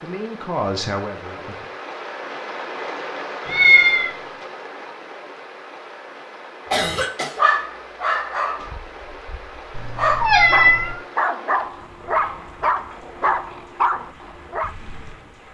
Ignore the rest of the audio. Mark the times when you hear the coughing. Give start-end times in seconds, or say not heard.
6.7-7.5.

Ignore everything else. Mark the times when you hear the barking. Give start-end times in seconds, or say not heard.
6.7-14.8.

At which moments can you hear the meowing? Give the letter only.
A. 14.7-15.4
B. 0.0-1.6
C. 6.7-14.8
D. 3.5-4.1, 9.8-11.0
D.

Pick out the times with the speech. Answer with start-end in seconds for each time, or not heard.
0.0-1.6.